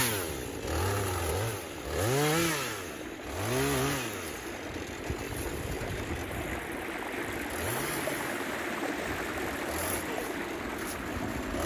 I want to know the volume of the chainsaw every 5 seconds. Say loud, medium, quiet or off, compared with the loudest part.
loud, medium, medium.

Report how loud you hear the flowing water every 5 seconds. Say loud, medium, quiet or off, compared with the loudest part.
medium, loud, loud.